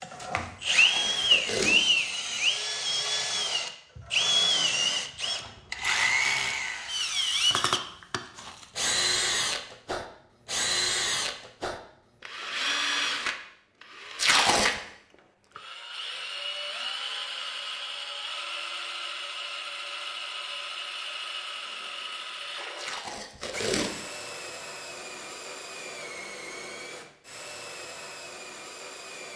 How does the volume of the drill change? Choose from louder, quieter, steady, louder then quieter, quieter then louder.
quieter.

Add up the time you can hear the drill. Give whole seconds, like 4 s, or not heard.
29 s.